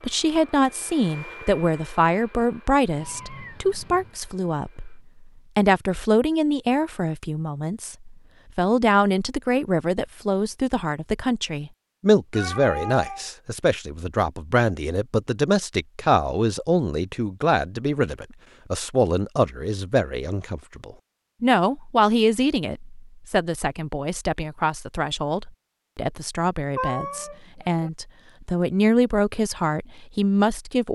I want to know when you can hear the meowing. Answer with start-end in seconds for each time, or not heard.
2.9-4.2, 12.3-13.3, 26.8-27.9.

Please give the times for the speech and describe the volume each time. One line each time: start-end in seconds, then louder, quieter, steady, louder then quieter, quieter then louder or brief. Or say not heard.
0.0-30.8 steady.